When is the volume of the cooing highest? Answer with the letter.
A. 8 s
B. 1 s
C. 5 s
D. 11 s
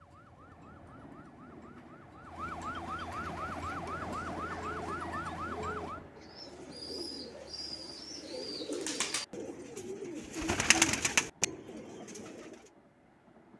D.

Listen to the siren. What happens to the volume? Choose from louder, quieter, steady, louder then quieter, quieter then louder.
louder.